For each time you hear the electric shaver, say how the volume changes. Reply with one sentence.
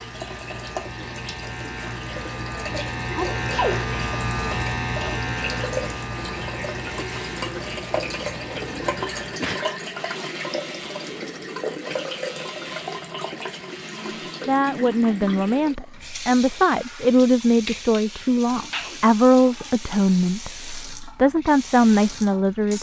You can hear the electric shaver from 0.0 to 14.5 s, getting louder then quieter.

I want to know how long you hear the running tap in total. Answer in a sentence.
You can hear the running tap for 23 seconds altogether.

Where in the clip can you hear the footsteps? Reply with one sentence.
The footsteps can't be heard in this clip.